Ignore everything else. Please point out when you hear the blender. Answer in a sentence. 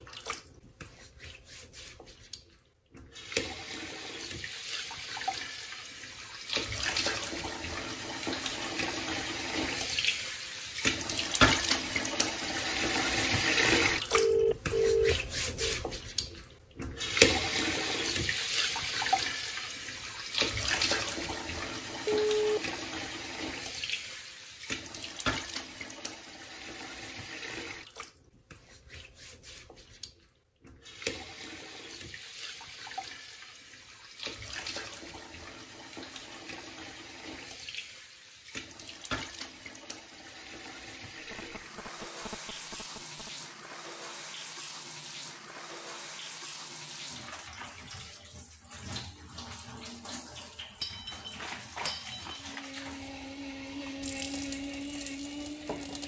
The blender can be heard from 52.2 to 56.0 s.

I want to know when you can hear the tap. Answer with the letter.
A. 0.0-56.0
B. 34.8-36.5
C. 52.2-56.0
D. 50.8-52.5
A.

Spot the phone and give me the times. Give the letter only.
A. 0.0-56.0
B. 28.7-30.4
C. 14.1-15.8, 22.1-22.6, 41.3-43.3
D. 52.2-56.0
C.